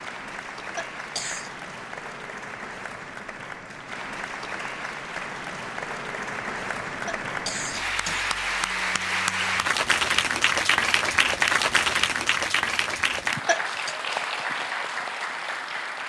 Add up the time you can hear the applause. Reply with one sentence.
You can hear the applause for 16 seconds altogether.